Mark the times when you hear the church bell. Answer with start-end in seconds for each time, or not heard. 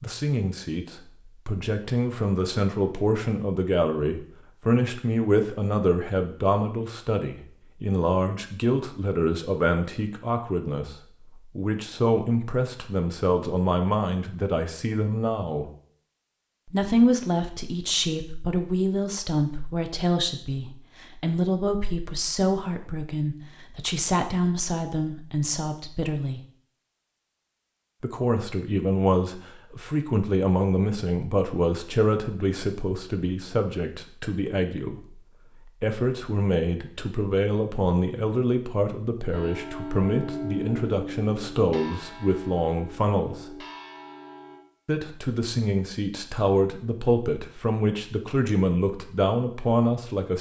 39.3-44.6.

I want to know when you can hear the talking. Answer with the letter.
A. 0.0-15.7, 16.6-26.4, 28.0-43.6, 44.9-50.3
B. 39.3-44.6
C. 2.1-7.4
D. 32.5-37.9
A.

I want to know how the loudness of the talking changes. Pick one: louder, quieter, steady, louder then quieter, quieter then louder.
steady.